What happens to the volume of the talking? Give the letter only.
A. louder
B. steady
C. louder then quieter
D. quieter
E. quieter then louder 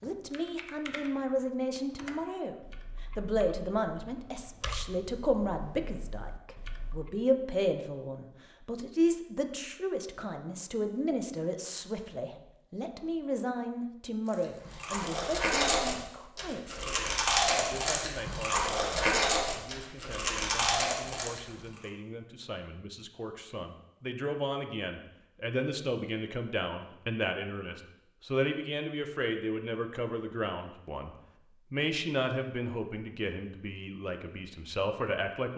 E.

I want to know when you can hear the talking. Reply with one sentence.
The talking can be heard from 0.0 to 35.5 s.